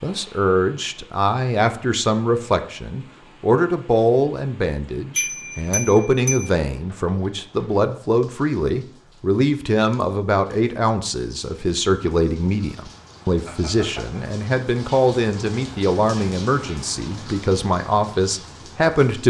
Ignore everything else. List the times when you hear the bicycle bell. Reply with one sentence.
The bicycle bell can be heard from 5.2 to 6.5 s and from 13.4 to 14.2 s.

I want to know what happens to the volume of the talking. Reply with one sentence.
The loudness of the talking stays about the same.